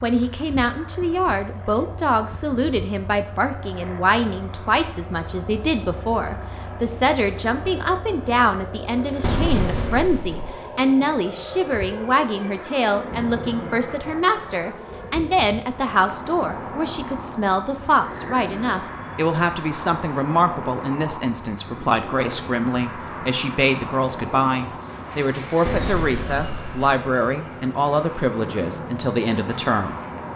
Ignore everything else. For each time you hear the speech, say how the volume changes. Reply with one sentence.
The speech can be heard from 0.0 to 29.9 s, at a steady volume.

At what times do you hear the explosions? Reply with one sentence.
The explosions can be heard from 9.2 to 10.6 s and from 25.6 to 26.8 s.